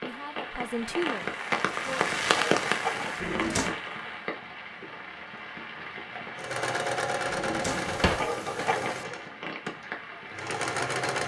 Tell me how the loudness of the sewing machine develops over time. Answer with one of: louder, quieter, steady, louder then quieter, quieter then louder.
quieter then louder.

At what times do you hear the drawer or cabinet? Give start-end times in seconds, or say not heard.
3.2-3.8, 7.3-8.3.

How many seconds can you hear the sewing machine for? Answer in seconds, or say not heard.
5 s.